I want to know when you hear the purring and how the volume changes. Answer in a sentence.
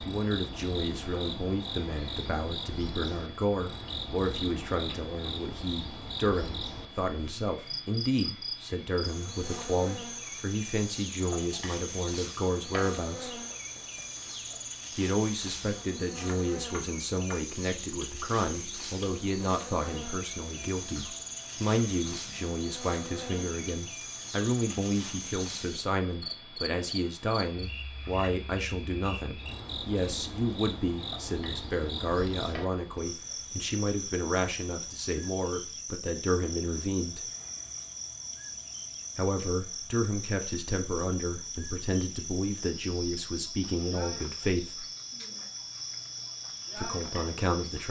You can't hear the purring here.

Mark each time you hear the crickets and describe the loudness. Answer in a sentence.
You can hear the crickets from 0.0 to 47.8 s, at a steady volume.